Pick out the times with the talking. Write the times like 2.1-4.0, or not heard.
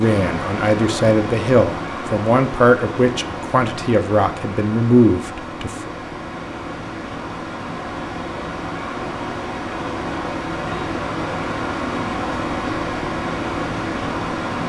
0.0-5.9.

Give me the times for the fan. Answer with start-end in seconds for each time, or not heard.
0.0-14.6.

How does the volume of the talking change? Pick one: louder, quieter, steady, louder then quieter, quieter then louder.
steady.